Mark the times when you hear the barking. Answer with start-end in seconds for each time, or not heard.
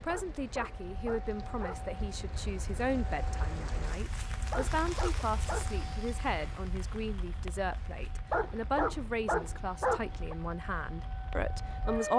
0.1-1.9, 4.5-5.8, 8.3-10.3.